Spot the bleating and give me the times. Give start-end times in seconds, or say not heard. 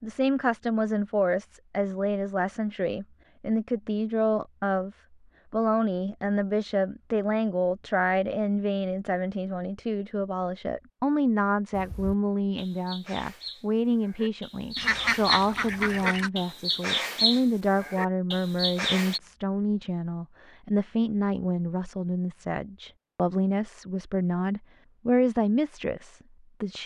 11.8-19.2.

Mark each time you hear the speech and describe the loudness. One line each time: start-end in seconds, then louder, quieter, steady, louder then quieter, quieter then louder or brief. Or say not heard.
0.0-26.8 steady.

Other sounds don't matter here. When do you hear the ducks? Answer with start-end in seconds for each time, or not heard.
14.8-16.3.